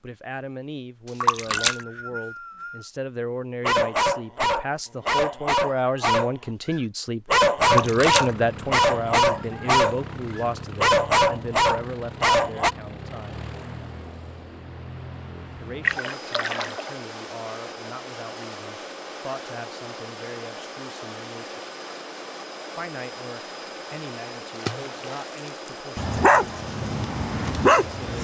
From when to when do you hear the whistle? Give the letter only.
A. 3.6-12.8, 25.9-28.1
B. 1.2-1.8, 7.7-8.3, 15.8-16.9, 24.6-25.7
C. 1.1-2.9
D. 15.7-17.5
C.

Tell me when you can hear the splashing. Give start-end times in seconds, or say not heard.
1.2-1.8, 7.7-8.3, 15.8-16.9, 24.6-25.7.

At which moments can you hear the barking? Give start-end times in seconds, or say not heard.
3.6-12.8, 25.9-28.1.